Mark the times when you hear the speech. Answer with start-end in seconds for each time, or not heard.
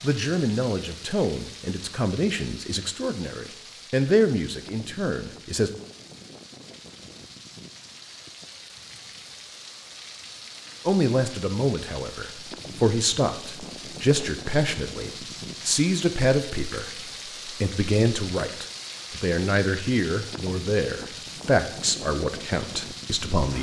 0.0-5.7, 10.8-23.5.